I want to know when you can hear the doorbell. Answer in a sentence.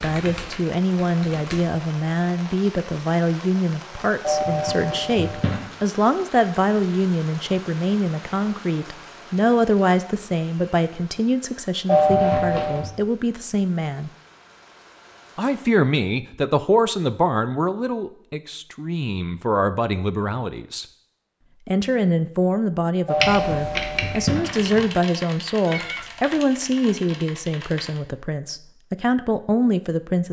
The doorbell can be heard from 4.2 to 5.6 s, from 11.8 to 12.9 s and from 23.1 to 24.8 s.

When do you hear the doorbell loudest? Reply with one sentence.
The volume of the doorbell peaks at 12 seconds.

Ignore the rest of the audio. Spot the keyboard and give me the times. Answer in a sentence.
The keyboard can be heard from 0.0 to 1.7 s and from 23.2 to 28.0 s.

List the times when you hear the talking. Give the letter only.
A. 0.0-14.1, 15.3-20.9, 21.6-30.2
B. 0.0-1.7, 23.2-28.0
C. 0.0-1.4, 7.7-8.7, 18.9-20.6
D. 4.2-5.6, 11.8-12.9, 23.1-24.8
A.